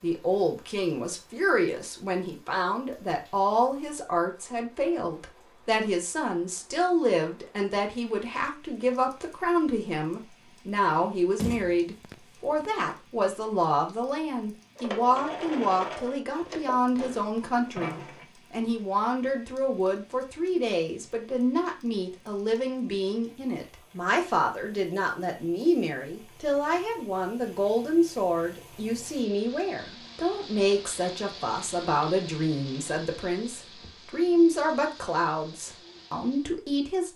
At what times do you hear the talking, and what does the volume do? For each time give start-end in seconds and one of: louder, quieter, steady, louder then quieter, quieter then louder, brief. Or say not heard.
0.0-37.1 steady.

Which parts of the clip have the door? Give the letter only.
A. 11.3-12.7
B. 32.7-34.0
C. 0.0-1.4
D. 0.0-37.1
A.